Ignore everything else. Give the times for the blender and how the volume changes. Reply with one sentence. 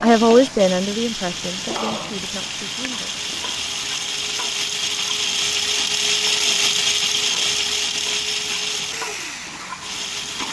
You can hear the blender from 0.0 to 10.4 s, getting louder then quieter.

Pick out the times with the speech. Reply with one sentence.
You can hear the speech from 0.0 to 3.1 s.